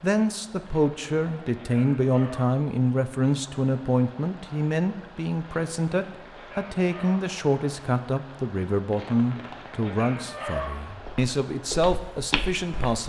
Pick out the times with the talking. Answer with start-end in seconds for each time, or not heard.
0.0-13.0.